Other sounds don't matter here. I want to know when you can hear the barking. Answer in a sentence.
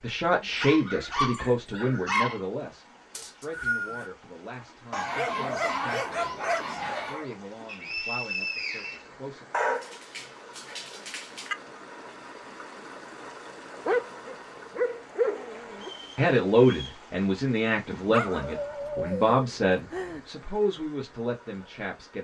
The barking can be heard from 0.4 to 2.4 s, from 4.9 to 7.3 s, from 9.5 to 11.6 s, from 13.8 to 15.9 s and from 17.9 to 20.2 s.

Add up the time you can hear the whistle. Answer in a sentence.
The whistle can be heard for 4 seconds in total.